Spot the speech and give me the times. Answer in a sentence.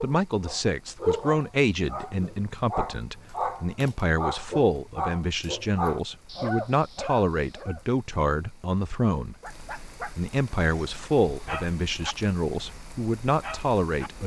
The speech can be heard from 0.0 to 9.3 s and from 10.0 to 14.2 s.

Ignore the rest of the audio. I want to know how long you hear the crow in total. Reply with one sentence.
The crow can't be heard in this clip.